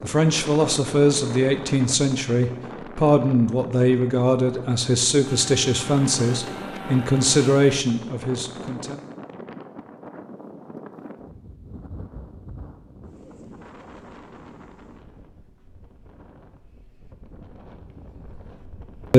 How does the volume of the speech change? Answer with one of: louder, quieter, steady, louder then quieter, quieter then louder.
steady.